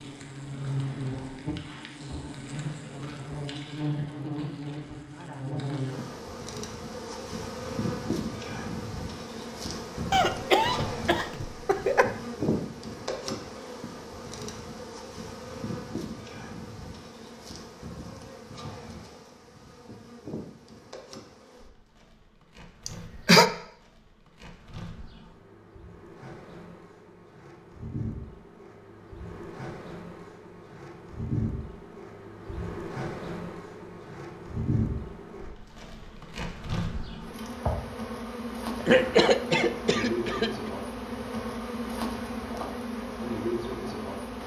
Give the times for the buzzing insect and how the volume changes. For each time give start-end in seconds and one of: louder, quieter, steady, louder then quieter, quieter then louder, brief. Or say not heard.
0.0-44.4 quieter then louder.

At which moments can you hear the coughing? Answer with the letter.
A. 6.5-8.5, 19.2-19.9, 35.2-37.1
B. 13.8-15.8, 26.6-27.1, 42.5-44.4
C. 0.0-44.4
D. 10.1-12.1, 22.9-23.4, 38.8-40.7
D.